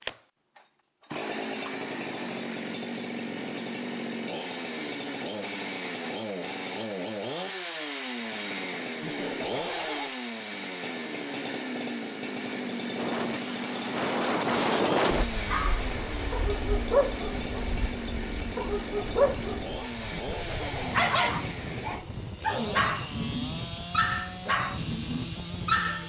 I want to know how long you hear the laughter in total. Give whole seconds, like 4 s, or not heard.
2 s.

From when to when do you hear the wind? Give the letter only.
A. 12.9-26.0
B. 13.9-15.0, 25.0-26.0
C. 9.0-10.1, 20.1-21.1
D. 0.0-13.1
A.